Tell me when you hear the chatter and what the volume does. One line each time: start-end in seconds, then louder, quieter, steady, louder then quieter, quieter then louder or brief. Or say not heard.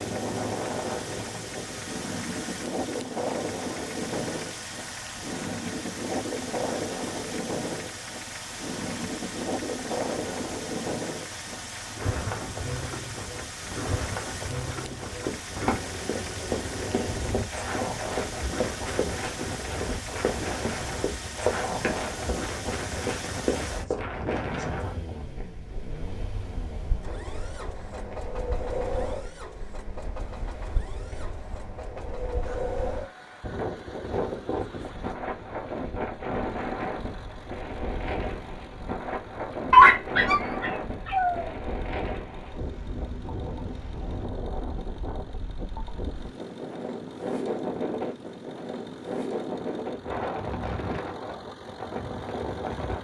not heard.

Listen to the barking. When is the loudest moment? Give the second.
40 s.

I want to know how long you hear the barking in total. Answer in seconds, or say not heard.
2 s.